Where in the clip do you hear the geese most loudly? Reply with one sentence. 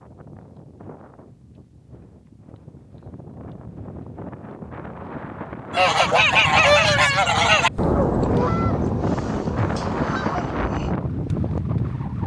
The volume of the geese peaks at 7 seconds.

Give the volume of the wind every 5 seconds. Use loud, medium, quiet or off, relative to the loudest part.
quiet, loud, loud.